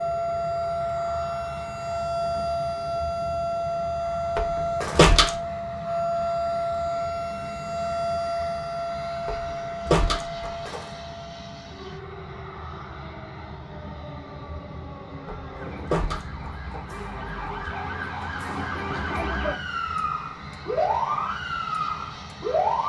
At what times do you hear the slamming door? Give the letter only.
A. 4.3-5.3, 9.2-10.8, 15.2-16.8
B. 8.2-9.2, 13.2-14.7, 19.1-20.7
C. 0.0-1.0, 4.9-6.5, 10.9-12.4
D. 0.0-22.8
A.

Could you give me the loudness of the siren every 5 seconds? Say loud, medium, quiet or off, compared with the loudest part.
loud, loud, quiet, medium, loud.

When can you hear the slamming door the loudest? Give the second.
5 s.